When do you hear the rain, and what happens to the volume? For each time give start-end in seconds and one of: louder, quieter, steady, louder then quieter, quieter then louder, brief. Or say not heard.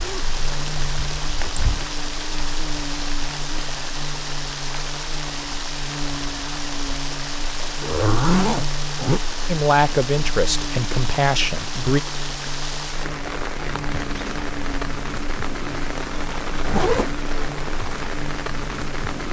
0.0-19.2 steady.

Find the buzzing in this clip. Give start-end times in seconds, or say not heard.
0.1-19.2.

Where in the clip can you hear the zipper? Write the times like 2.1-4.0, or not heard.
0.0-1.9, 7.8-9.2, 16.6-17.1.